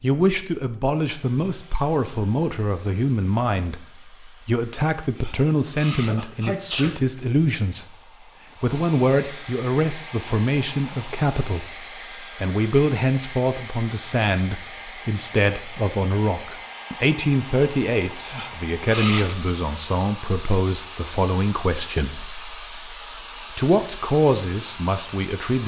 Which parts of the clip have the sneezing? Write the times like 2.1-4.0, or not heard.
5.2-7.0, 18.3-19.3.